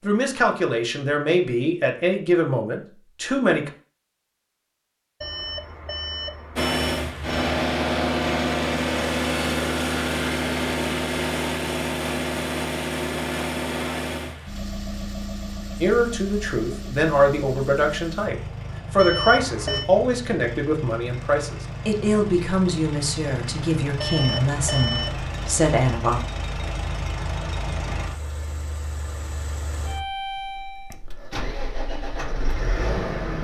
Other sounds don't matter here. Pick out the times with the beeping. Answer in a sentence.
The beeping can be heard from 5.2 to 7.3 s, from 18.9 to 19.9 s and from 24.0 to 25.2 s.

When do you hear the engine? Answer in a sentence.
The engine can be heard from 6.5 to 33.4 s.